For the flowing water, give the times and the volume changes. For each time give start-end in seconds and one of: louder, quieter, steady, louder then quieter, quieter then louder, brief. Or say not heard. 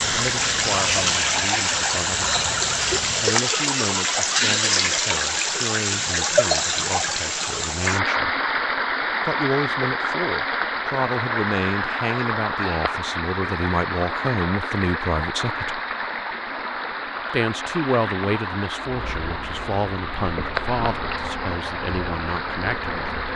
0.0-23.3 quieter.